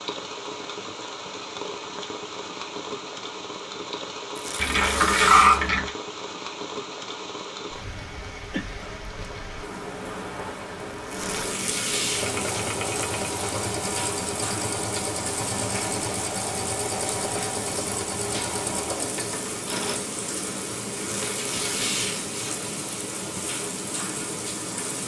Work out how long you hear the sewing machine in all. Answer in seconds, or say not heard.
8 s.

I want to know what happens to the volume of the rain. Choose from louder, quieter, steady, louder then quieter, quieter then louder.
steady.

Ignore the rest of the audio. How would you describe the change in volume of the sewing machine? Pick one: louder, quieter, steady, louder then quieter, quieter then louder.
steady.